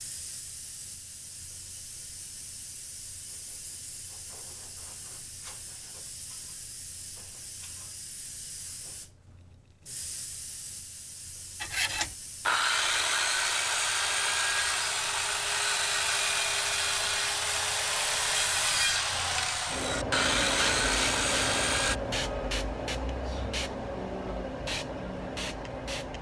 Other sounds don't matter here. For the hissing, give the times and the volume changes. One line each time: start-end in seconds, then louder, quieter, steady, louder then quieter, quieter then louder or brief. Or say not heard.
0.0-26.1 louder.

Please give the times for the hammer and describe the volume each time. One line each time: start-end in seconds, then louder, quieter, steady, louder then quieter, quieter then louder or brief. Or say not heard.
not heard.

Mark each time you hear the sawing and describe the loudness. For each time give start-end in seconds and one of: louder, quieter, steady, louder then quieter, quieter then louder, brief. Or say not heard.
11.6-22.0 steady.